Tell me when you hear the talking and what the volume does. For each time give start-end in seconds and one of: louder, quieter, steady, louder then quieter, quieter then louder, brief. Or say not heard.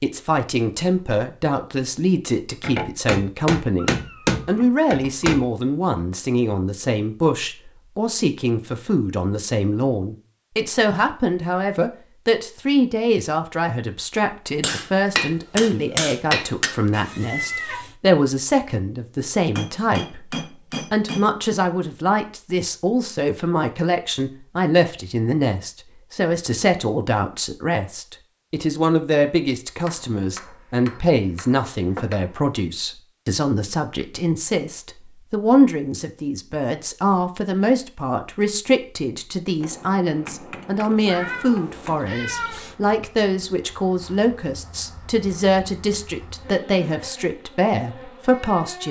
0.0-48.8 steady.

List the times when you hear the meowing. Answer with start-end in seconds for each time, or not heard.
3.8-5.3, 16.9-17.9, 41.0-42.8.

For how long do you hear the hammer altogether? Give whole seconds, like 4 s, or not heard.
12 s.